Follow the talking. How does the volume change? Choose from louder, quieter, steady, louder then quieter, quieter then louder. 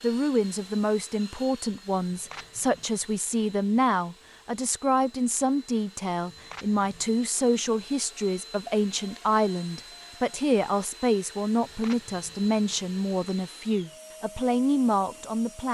steady.